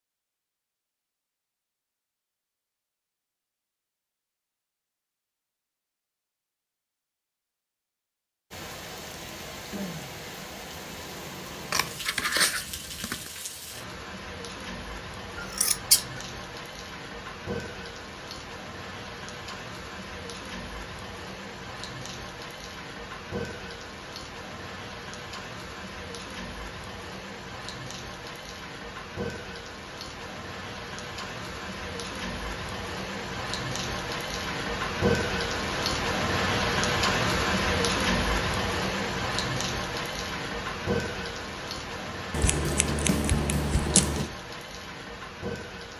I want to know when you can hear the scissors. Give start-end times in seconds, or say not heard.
11.7-13.3, 15.3-16.2, 42.3-44.3.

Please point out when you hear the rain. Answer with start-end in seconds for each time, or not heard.
8.5-45.9.